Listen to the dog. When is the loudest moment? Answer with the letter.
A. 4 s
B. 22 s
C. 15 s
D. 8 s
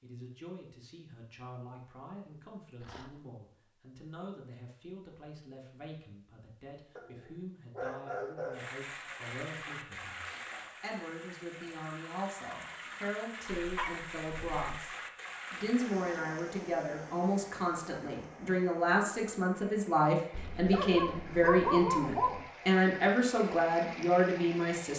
B.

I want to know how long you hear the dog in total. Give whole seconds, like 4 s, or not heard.
5 s.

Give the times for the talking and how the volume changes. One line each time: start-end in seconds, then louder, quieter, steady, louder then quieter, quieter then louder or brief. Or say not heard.
0.0-24.9 louder.